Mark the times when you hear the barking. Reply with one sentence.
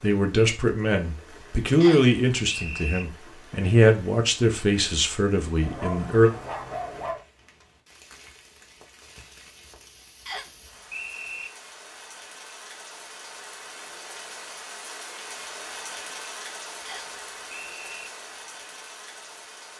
The barking can be heard from 5.6 to 7.2 s.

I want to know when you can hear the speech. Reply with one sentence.
The speech can be heard from 0.0 to 6.3 s.